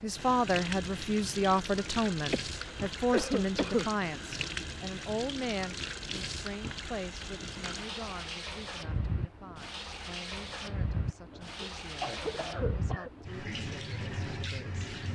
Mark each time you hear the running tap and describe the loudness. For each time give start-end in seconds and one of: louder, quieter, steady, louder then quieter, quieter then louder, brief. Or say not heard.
0.0-15.1 steady.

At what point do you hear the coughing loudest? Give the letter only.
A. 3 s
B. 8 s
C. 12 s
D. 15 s
A.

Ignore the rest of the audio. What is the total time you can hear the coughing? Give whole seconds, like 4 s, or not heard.
3 s.